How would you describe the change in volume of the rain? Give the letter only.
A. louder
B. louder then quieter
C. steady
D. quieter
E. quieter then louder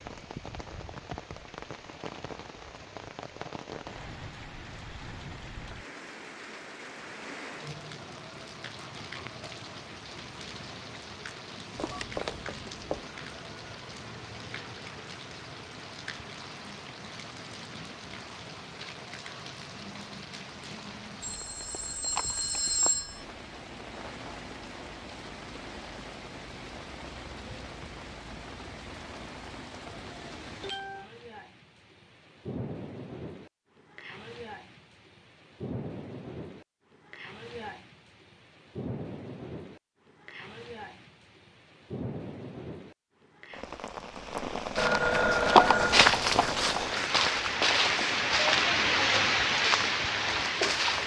A.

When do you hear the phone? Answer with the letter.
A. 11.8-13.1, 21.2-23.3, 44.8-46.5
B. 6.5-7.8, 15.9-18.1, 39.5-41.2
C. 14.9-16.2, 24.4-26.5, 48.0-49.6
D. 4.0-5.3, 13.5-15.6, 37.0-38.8
A.